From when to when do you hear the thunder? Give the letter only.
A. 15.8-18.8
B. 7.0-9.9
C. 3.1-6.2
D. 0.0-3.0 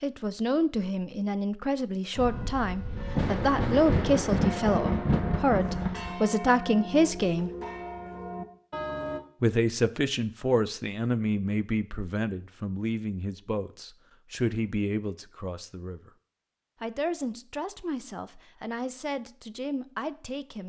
C.